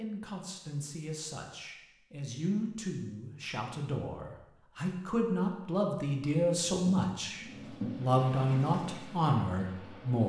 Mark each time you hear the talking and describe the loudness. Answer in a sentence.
The talking can be heard from 0.0 to 10.2 s, getting louder.